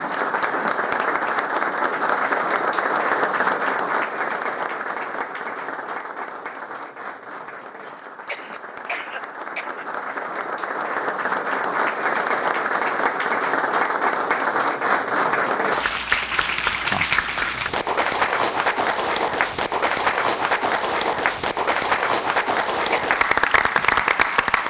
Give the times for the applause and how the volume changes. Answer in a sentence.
You can hear the applause from 0.0 to 24.6 s, getting quieter then louder.